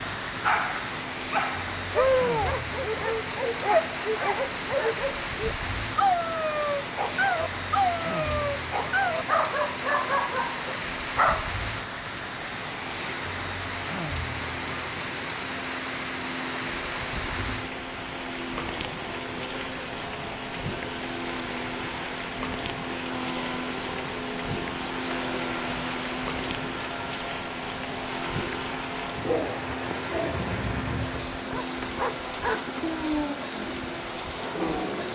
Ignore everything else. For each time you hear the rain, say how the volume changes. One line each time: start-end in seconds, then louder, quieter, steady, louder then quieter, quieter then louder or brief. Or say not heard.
0.0-35.1 steady.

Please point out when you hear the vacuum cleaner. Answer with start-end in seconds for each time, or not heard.
0.1-35.1.